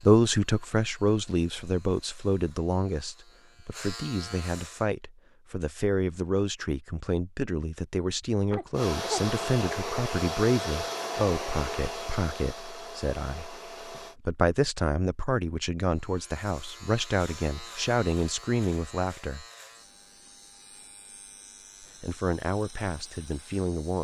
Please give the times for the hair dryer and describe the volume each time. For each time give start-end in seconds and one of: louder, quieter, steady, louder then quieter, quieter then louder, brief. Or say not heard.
8.7-14.2 quieter.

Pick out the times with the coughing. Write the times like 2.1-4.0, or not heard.
8.2-9.3.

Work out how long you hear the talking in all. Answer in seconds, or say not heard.
21 s.